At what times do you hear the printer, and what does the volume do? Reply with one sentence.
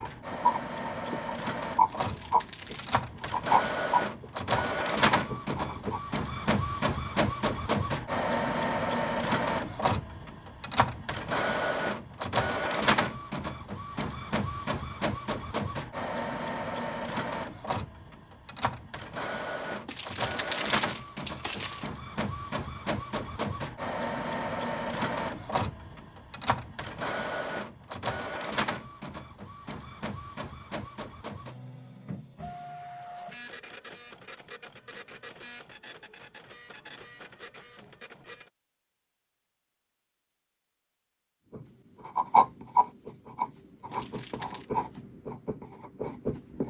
The printer can be heard from 0.0 to 38.5 s, getting quieter.